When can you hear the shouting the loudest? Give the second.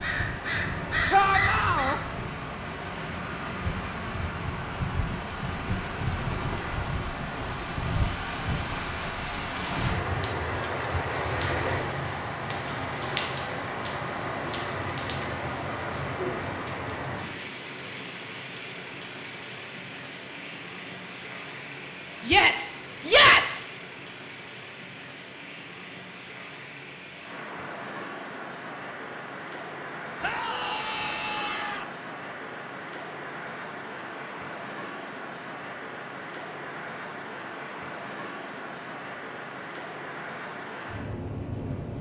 23 s.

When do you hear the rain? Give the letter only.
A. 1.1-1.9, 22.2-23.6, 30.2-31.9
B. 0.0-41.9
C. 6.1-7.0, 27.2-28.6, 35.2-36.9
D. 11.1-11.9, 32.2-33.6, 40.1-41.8
B.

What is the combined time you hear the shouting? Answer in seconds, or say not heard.
4 s.